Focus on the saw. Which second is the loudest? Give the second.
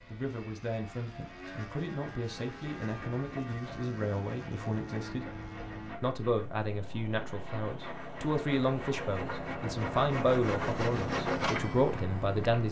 11 s.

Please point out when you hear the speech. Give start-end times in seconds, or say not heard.
0.1-5.2, 6.0-12.6.